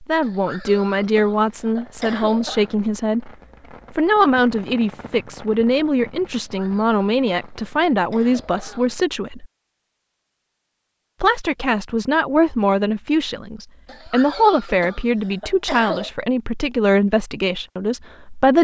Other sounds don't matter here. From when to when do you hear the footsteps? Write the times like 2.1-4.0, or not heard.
not heard.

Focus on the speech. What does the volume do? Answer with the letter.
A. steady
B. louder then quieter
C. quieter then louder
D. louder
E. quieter
A.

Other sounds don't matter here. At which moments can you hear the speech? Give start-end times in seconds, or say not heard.
0.0-3.3, 3.9-9.4, 11.2-18.5.